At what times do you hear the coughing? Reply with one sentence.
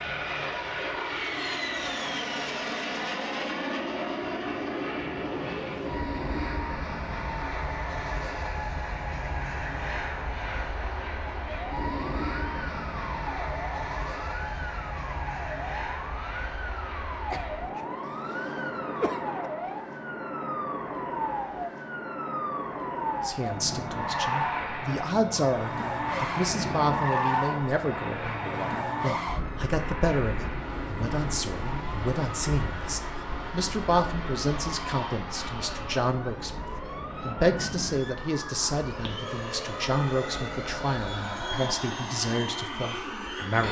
You can hear the coughing from 17.3 to 19.3 s.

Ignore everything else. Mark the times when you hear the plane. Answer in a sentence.
The plane can be heard from 0.0 to 43.6 s.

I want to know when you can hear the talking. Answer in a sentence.
The talking can be heard from 23.2 to 43.6 s.